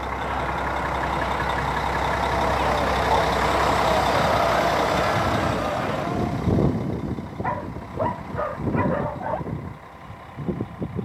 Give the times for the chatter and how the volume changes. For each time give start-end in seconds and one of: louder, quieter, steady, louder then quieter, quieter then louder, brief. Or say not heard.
0.1-6.3 louder.